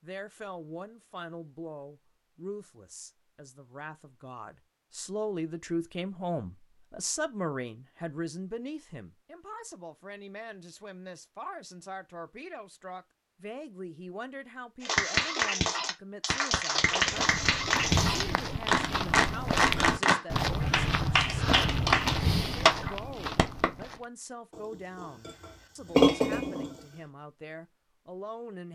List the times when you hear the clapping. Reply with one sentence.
The clapping can be heard from 14.8 to 23.7 s.